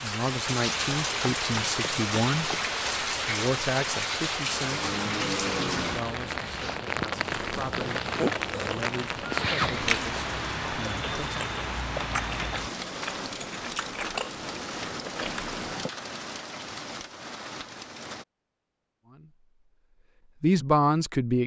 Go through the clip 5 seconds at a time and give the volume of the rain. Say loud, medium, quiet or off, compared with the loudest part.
loud, loud, medium, medium, off.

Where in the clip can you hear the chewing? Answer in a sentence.
You can hear the chewing from 7.2 to 15.9 s.